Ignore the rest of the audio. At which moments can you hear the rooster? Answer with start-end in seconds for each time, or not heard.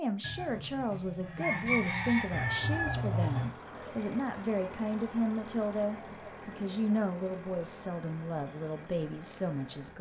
0.2-3.5.